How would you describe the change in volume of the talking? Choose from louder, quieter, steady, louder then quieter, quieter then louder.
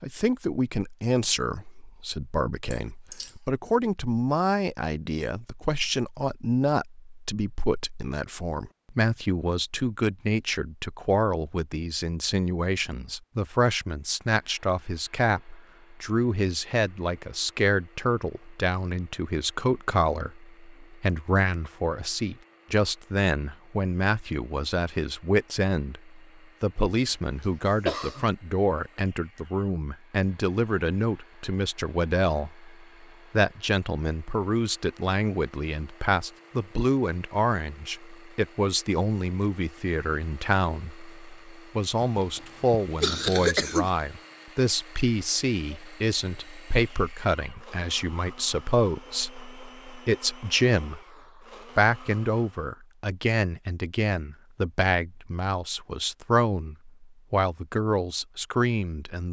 steady.